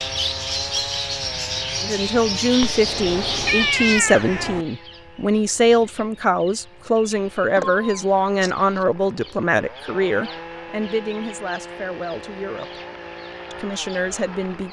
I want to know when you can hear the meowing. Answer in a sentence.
The meowing can be heard from 2.6 to 4.7 s and from 7.5 to 8.8 s.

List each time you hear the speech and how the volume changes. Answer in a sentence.
The speech can be heard from 1.8 to 12.8 s, getting quieter; and briefly from 13.5 to 14.6 s.